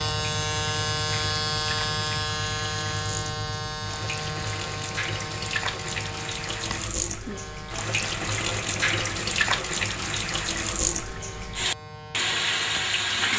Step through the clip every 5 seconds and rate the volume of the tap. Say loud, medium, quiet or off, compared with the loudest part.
medium, loud, loud.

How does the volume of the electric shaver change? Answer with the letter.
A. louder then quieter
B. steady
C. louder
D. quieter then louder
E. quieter
E.